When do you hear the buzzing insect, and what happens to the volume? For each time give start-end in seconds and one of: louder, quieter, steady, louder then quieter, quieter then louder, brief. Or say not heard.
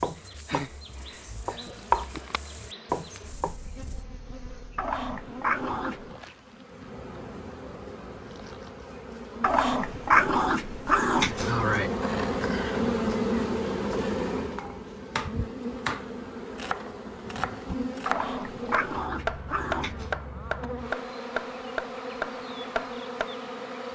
0.0-23.9 louder then quieter.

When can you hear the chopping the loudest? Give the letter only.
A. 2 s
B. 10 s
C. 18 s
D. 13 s
A.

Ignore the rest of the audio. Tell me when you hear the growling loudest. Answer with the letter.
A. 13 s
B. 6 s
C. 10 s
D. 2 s
C.